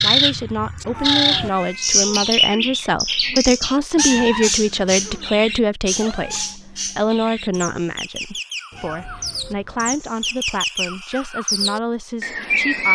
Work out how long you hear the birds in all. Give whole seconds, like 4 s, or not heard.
13 s.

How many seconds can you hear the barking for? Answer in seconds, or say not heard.
not heard.